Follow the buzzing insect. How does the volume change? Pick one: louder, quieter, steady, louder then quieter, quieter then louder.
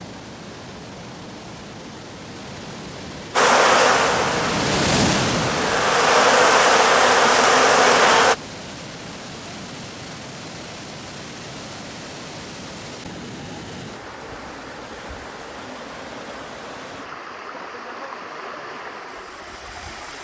quieter then louder.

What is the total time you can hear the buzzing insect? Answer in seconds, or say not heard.
5 s.